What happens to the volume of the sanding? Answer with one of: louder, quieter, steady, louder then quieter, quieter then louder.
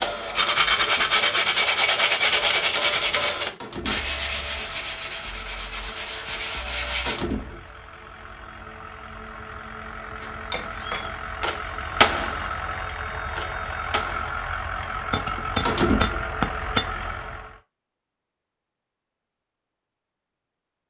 quieter.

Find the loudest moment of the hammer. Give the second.
12 s.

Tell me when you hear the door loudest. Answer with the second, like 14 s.
16 s.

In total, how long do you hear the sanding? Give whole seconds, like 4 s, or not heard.
7 s.